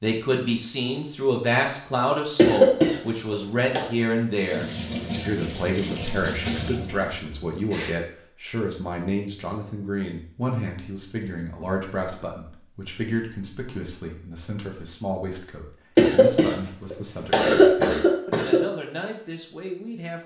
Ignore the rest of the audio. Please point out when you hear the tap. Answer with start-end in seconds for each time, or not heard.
4.5-8.0.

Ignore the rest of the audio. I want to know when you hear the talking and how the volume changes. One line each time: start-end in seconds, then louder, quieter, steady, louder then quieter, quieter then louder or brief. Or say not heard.
0.0-20.2 quieter.